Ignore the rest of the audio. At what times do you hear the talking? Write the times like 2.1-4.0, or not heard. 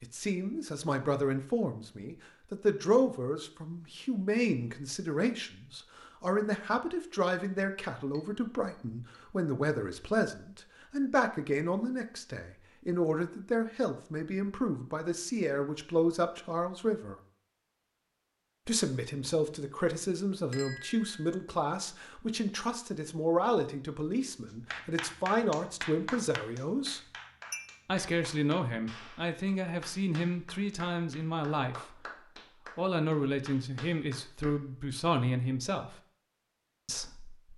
0.0-17.1, 18.6-27.0, 27.9-32.0, 32.8-36.0, 36.9-37.5.